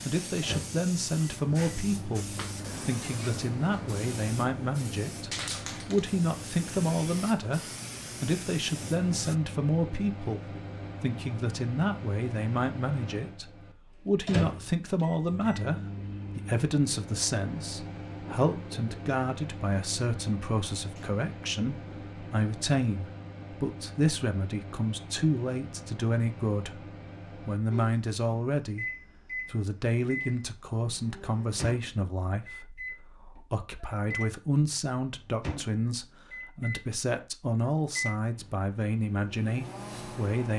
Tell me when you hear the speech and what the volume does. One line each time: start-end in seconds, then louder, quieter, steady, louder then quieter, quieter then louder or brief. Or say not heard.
0.1-40.5 steady.